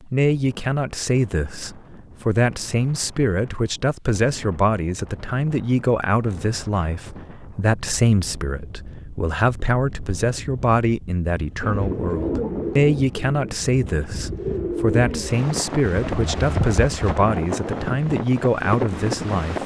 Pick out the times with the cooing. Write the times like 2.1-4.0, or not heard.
11.6-17.8.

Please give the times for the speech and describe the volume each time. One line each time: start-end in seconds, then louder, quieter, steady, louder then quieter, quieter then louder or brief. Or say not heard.
0.0-19.6 steady.